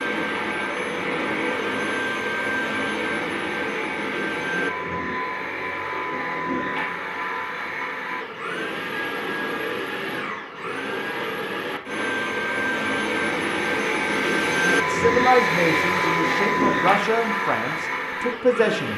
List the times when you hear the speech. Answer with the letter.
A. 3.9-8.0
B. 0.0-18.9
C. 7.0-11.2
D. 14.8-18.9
D.